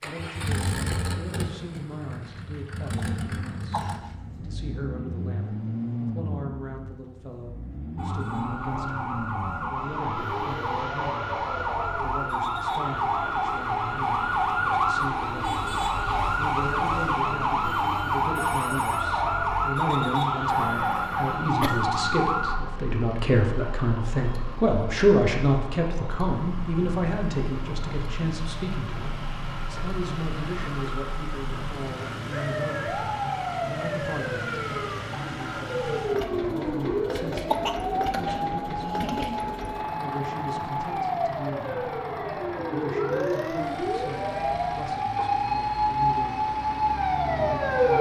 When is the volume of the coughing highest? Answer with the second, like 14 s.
38 s.